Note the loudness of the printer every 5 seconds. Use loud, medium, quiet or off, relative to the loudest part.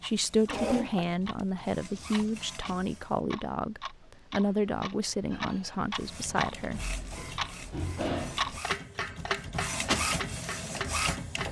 medium, medium, loud.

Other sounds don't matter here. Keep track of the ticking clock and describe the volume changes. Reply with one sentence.
The volume of the ticking clock goes up.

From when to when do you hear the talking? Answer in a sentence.
You can hear the talking from 0.0 to 6.8 s.